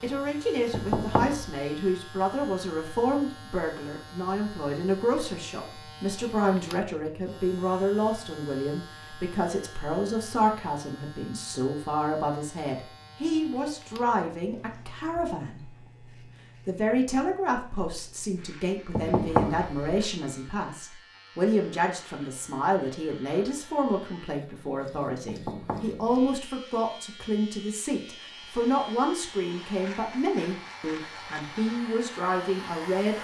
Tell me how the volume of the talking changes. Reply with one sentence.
The loudness of the talking stays about the same.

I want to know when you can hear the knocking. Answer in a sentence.
The knocking can be heard from 0.7 to 1.6 s, from 18.9 to 19.8 s and from 25.2 to 26.1 s.